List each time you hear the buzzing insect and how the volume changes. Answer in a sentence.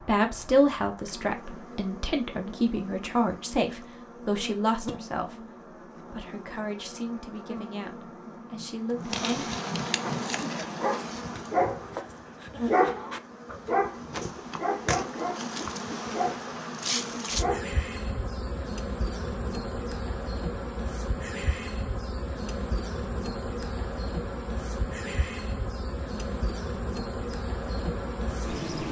You can hear the buzzing insect from 0.0 to 28.8 s, getting louder.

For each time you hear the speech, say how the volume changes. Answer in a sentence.
The speech can be heard from 0.0 to 9.6 s, getting quieter.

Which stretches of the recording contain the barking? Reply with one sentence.
The barking can be heard from 10.0 to 17.8 s.